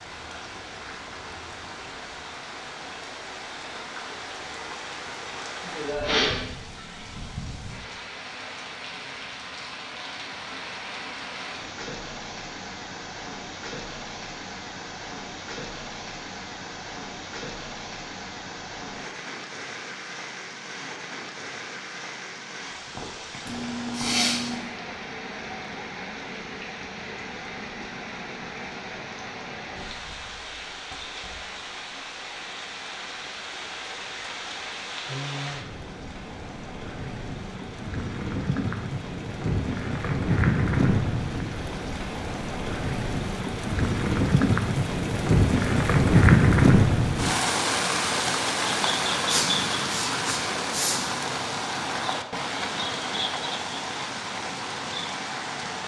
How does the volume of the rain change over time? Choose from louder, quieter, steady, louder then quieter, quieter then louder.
louder.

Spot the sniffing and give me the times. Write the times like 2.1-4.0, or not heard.
5.7-6.4, 23.4-24.6, 49.2-51.0.